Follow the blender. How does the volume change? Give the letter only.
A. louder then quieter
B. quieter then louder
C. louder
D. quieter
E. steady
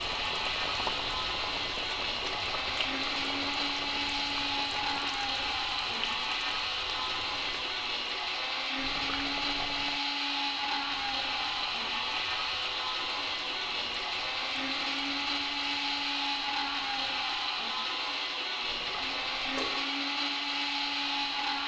E.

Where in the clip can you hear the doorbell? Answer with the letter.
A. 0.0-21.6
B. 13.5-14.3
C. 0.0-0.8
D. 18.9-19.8
D.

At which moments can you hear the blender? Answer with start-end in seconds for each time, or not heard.
0.0-21.6.